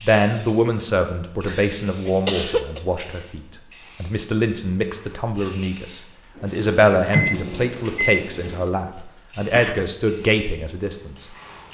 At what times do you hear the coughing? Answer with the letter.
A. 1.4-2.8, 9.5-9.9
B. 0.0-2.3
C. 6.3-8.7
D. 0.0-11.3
A.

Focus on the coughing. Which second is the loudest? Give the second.
2 s.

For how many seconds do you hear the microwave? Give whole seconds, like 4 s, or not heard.
2 s.